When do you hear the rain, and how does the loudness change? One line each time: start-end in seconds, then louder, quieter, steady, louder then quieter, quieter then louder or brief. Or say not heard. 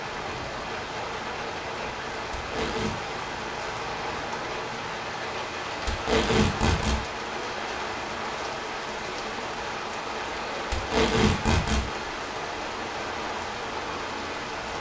0.0-14.7 steady.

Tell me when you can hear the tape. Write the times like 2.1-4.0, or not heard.
2.4-3.0, 5.8-7.0, 10.7-11.8.